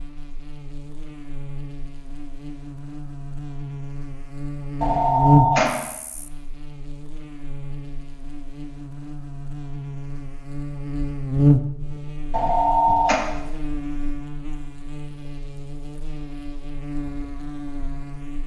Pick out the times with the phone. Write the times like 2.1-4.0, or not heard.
4.8-5.8, 12.3-13.2.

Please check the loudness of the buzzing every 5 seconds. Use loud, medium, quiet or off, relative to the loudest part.
medium, loud, loud, medium.